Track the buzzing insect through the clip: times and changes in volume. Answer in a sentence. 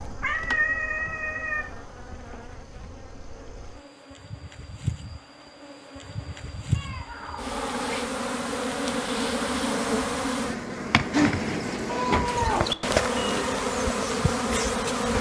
You can hear the buzzing insect from 0.0 to 15.1 s, getting louder.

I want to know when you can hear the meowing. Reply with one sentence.
The meowing can be heard from 0.2 to 1.6 s, from 6.8 to 8.1 s and from 11.8 to 13.3 s.